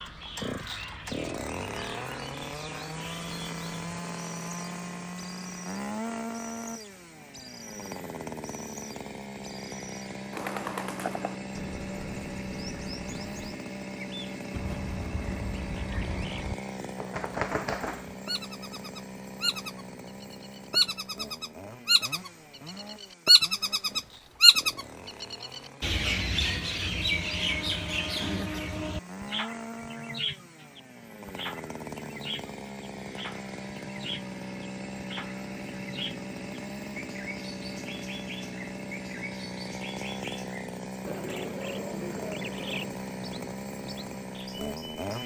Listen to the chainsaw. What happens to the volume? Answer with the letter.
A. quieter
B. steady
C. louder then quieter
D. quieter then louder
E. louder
D.